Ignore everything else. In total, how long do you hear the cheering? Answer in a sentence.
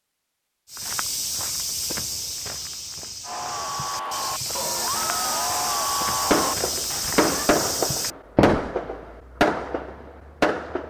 You can hear the cheering for 4 seconds altogether.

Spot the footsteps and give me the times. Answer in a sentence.
The footsteps can be heard from 0.7 to 8.8 s.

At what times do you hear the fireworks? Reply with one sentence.
You can hear the fireworks from 6.3 to 10.8 s.